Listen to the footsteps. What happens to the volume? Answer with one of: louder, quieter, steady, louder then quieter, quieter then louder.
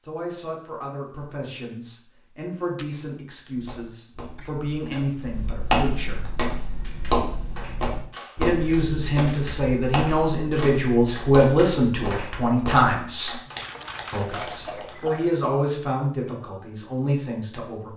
louder then quieter.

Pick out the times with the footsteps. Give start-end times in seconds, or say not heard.
3.5-12.9.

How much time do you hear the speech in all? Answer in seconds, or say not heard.
15 s.